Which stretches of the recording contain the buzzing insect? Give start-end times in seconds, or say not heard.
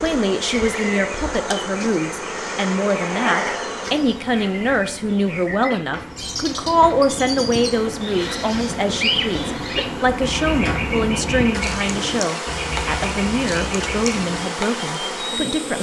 0.0-15.7.